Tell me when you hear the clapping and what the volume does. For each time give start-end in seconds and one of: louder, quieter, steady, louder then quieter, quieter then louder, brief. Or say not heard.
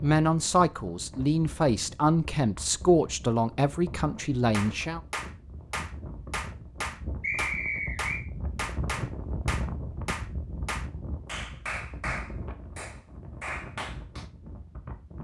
4.5-14.2 steady.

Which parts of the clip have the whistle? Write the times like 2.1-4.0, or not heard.
7.2-8.2.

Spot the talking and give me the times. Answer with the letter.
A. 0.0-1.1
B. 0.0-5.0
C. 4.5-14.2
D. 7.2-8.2
B.